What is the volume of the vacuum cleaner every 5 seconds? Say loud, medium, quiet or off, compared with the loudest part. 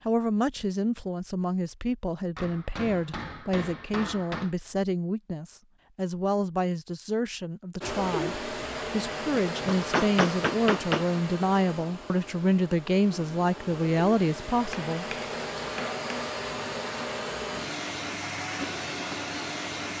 off, loud, medium, loud.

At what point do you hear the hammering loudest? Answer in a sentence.
The volume of the hammering peaks at 10 seconds.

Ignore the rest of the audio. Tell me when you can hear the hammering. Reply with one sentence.
The hammering can be heard from 2.4 to 4.5 s, from 9.1 to 11.1 s and from 14.7 to 16.4 s.